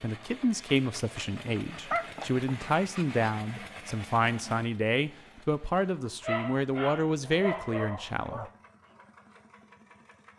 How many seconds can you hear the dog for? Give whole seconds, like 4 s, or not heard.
4 s.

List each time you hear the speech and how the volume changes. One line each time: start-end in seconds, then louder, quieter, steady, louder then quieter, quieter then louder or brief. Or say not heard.
0.0-8.4 steady.